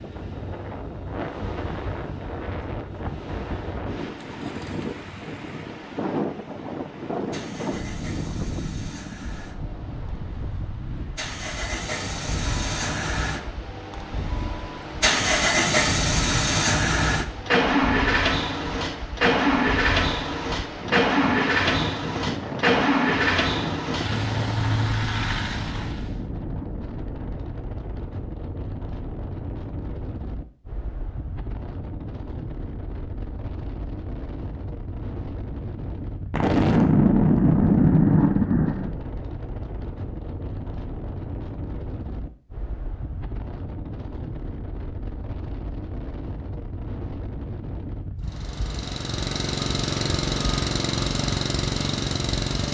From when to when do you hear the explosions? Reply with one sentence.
The explosions can be heard from 7.0 to 9.6 s, from 24.9 to 27.5 s and from 36.3 to 39.0 s.